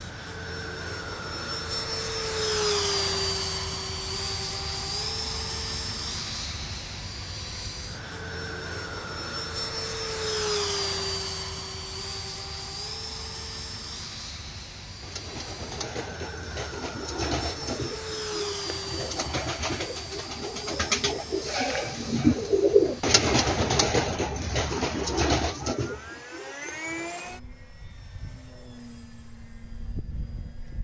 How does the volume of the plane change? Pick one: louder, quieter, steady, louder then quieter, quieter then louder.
quieter.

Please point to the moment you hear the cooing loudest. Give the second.
23 s.